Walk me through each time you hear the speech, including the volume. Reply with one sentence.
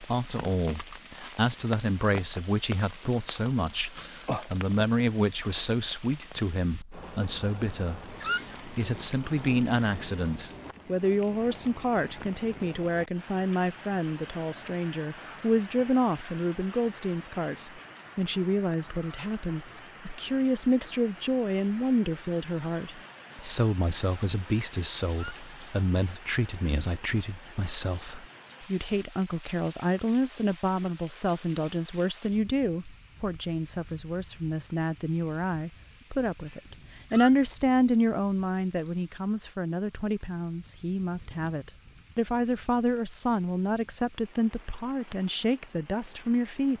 The speech can be heard from 0.0 to 46.7 s, at a steady volume.